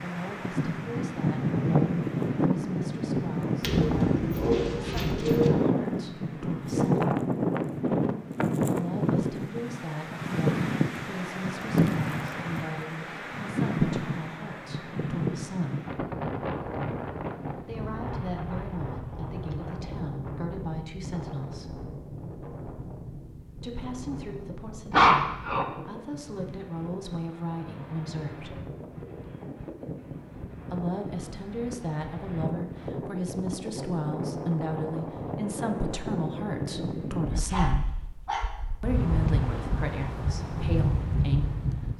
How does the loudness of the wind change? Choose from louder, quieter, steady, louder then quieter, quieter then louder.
quieter then louder.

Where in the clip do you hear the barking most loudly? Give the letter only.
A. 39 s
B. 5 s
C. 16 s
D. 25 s
D.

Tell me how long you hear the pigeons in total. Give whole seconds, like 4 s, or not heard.
2 s.